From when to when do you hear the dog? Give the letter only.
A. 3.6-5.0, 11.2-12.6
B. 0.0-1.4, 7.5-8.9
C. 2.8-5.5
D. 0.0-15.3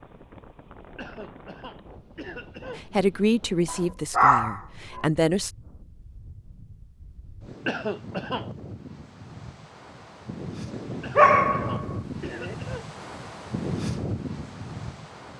A.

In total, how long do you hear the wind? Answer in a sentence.
The wind can be heard for 15 seconds in total.